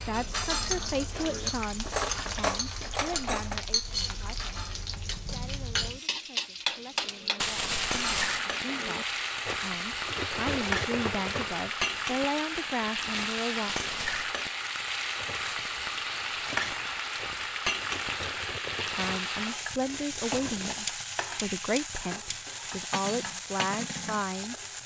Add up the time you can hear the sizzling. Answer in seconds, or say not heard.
25 s.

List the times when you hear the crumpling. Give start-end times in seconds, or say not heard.
7.4-8.4, 13.7-14.4.